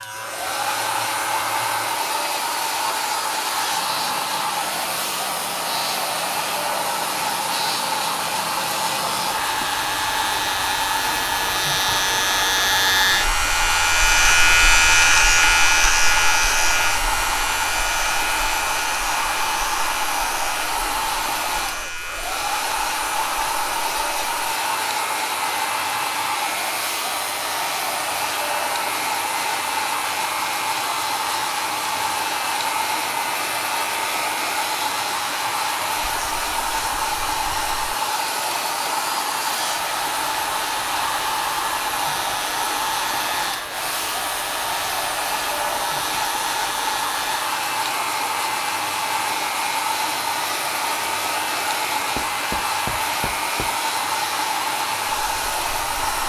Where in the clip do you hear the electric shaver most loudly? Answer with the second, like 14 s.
15 s.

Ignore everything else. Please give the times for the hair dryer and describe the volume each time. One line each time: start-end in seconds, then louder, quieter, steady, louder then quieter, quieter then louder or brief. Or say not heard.
0.0-56.2 steady.